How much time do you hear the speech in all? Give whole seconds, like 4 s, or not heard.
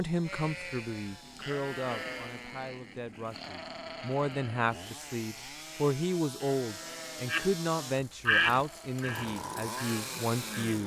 11 s.